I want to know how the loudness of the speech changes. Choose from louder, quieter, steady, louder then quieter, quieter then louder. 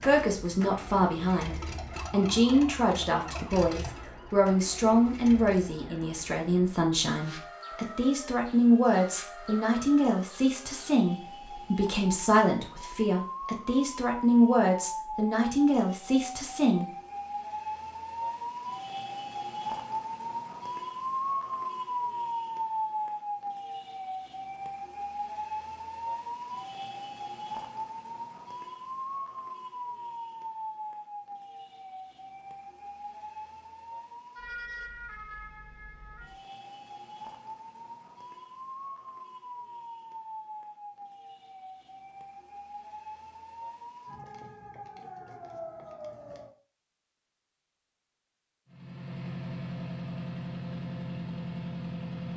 steady.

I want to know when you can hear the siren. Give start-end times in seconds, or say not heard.
0.0-46.5.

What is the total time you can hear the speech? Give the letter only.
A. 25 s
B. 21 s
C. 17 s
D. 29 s
C.